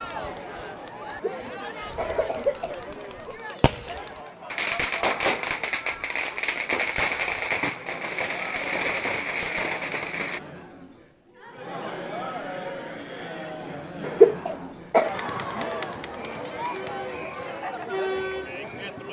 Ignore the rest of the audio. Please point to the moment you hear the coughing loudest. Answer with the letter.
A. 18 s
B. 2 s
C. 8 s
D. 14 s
D.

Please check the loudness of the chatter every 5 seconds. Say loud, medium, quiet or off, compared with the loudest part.
medium, medium, medium, loud.